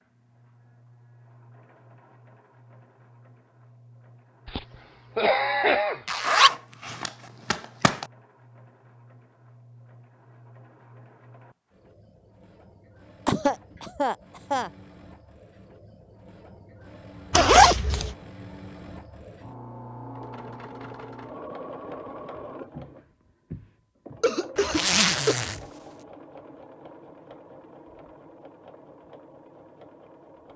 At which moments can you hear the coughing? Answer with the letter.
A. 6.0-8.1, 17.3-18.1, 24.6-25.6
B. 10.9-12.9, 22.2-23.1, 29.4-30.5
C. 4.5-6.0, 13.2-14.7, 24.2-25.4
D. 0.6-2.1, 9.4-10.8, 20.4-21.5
C.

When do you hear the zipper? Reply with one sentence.
The zipper can be heard from 6.0 to 8.1 s, from 17.3 to 18.1 s and from 24.6 to 25.6 s.